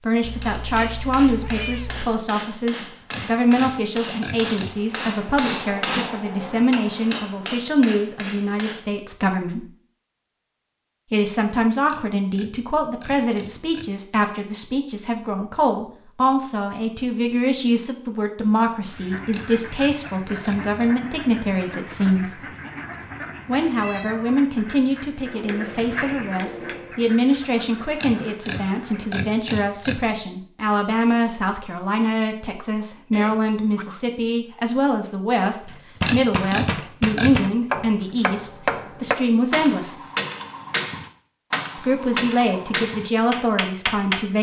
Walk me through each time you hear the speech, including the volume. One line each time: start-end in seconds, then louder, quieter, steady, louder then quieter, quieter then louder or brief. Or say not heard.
0.0-9.7 steady
11.1-22.4 steady
23.4-40.0 steady
41.8-44.3 brief.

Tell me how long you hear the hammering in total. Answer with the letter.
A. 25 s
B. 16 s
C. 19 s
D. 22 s
C.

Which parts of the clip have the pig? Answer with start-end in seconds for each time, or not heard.
3.0-5.0, 11.8-14.0, 19.3-20.9, 27.9-30.1, 36.0-37.5.